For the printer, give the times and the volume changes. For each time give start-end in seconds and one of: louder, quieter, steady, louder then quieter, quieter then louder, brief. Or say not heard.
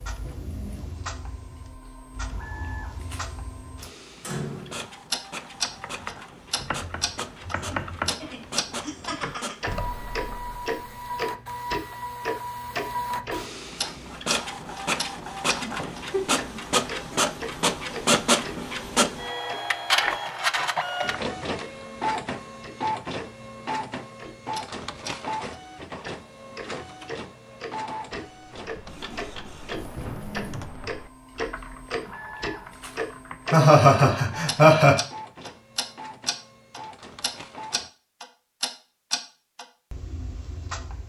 0.0-37.9 louder then quieter.